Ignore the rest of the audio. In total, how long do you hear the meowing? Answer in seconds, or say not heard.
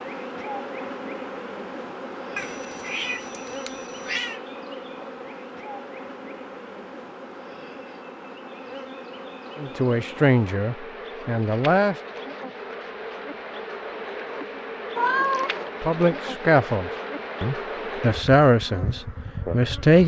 3 s.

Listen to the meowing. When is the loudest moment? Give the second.
15 s.